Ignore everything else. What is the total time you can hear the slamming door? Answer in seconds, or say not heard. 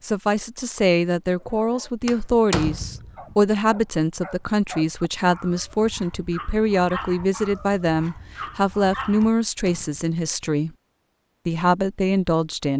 2 s.